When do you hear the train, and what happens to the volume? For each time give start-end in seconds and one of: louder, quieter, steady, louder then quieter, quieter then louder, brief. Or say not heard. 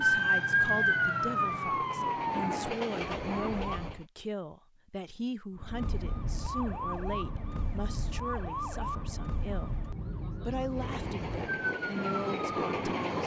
0.0-4.0 louder
10.7-13.2 brief.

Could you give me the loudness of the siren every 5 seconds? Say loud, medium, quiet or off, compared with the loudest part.
loud, medium, medium.